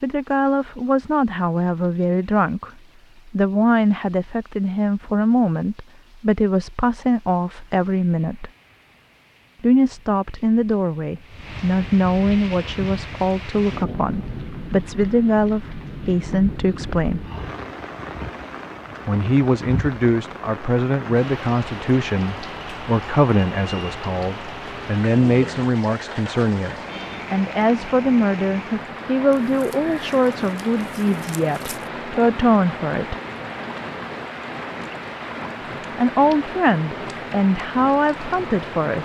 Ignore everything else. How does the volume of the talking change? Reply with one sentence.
The loudness of the talking stays about the same.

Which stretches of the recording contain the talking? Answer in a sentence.
You can hear the talking from 0.0 to 8.5 s, from 9.6 to 17.2 s, from 19.1 to 33.1 s and from 36.0 to 39.0 s.